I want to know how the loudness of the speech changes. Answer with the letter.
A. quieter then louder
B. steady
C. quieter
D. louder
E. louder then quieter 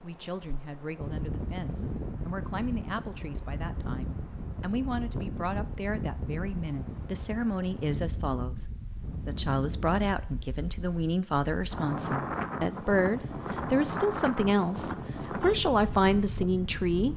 D.